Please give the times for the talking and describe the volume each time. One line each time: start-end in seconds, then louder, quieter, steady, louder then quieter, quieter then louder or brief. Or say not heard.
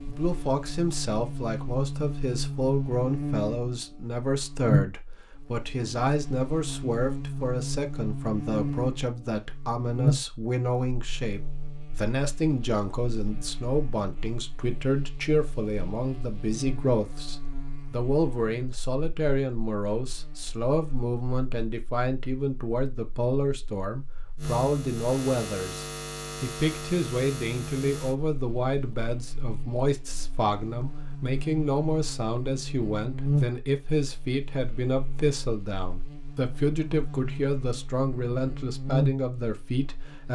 0.1-40.3 steady.